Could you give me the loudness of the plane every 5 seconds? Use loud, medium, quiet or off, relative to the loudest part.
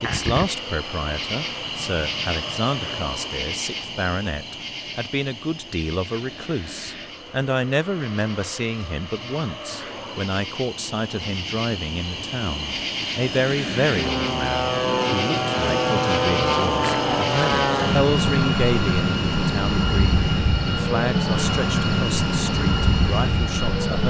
quiet, quiet, medium, loud, loud.